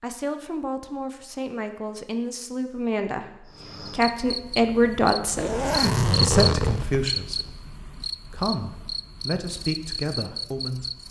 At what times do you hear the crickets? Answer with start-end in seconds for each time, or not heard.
3.5-11.0.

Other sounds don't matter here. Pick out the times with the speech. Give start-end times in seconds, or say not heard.
0.0-10.9.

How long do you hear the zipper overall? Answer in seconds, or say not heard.
2 s.